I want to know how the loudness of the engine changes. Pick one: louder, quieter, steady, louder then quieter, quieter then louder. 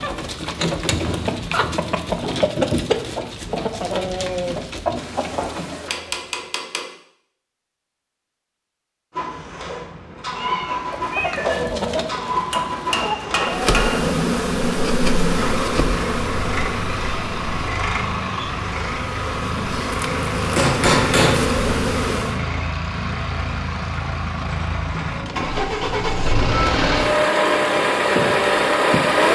louder.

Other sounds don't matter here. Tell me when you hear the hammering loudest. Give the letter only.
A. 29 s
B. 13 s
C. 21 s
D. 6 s
C.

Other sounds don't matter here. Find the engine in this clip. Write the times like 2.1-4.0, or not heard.
9.1-29.3.